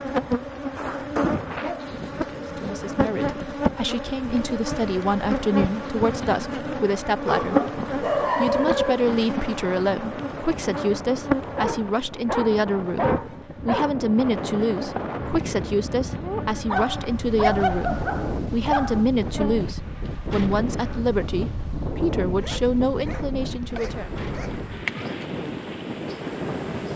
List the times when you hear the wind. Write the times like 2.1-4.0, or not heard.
0.0-26.9.